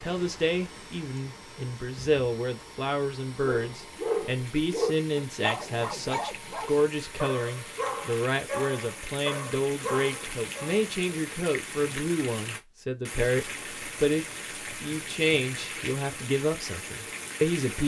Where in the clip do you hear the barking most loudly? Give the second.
4 s.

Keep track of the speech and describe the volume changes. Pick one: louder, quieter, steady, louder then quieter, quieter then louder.
steady.